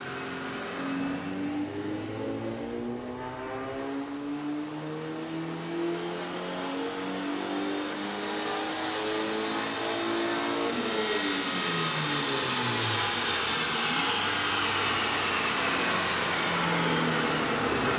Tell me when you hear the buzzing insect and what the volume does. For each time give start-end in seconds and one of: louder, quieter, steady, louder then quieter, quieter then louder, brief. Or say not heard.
0.2-17.9 louder.